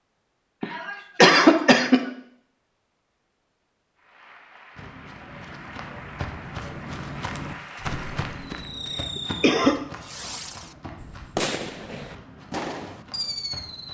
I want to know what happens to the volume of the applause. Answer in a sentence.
The volume of the applause goes up.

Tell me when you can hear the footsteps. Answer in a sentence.
You can hear the footsteps from 4.8 to 13.9 s.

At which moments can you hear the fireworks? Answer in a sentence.
The fireworks can be heard from 8.4 to 13.9 s.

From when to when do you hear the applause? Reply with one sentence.
The applause can be heard from 4.0 to 8.6 s.